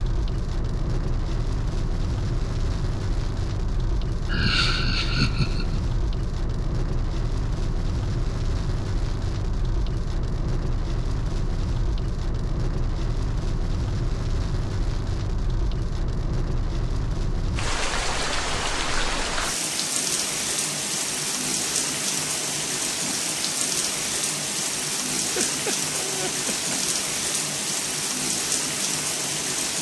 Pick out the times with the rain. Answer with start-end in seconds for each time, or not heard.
0.0-29.7.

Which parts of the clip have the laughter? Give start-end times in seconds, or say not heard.
4.2-5.8, 25.1-26.8.